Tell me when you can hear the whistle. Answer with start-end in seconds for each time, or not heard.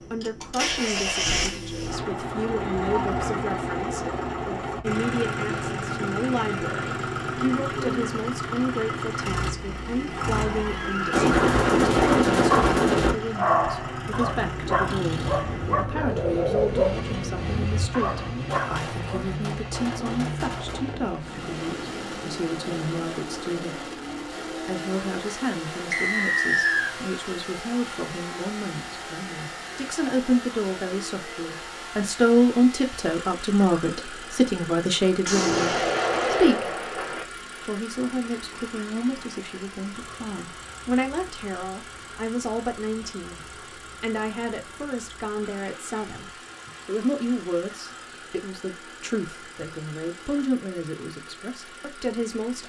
25.9-26.9.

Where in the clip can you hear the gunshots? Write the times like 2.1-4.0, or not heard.
11.1-13.2, 18.4-21.1, 35.2-37.2.